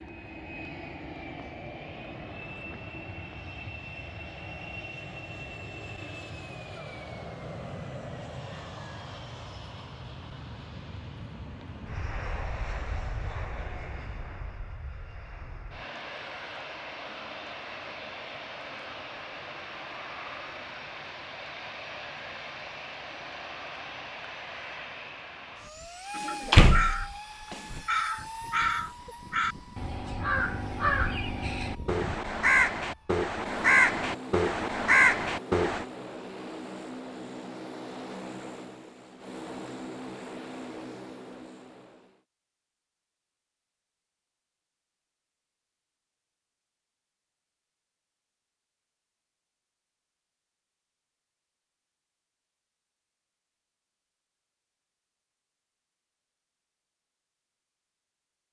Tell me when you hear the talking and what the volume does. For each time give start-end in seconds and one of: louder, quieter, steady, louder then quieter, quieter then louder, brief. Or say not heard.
not heard.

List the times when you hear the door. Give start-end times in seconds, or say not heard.
26.2-27.8.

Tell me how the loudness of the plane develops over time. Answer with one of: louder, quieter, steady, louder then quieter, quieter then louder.
steady.